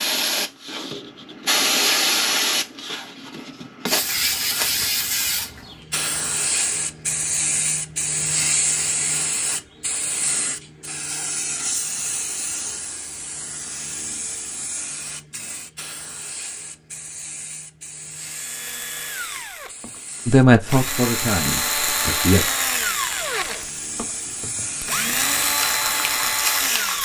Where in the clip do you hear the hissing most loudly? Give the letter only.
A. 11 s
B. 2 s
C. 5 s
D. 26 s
B.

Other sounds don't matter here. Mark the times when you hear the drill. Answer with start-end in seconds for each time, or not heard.
18.1-27.0.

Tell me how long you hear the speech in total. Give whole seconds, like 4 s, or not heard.
2 s.